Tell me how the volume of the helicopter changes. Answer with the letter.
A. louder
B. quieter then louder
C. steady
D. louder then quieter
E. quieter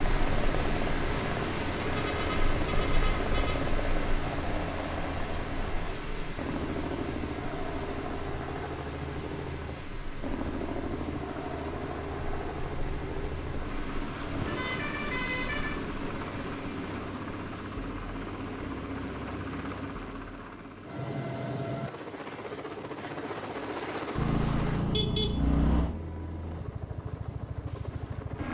C.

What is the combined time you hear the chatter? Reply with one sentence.
The chatter can't be heard in this clip.